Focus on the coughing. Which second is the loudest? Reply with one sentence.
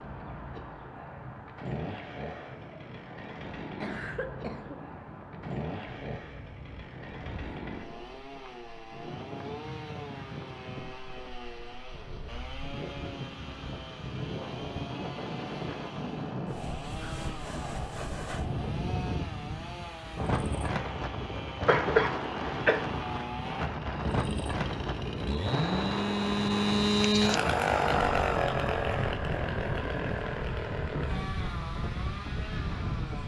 The volume of the coughing peaks at 22 seconds.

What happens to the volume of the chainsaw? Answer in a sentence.
The volume of the chainsaw goes up.